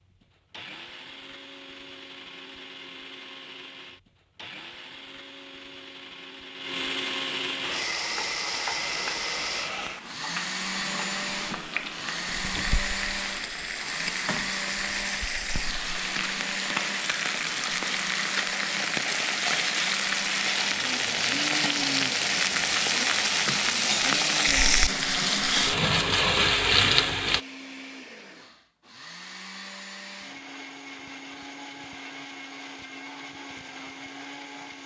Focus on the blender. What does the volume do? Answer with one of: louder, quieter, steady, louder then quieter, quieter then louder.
louder then quieter.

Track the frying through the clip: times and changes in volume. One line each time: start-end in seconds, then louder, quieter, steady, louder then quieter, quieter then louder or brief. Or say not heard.
7.6-27.4 louder.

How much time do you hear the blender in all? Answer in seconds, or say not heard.
35 s.